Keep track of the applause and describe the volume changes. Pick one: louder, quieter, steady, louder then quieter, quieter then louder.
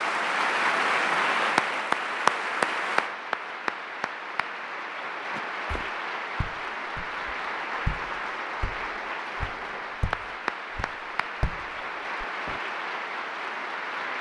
quieter.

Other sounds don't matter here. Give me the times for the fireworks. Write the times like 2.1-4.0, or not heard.
not heard.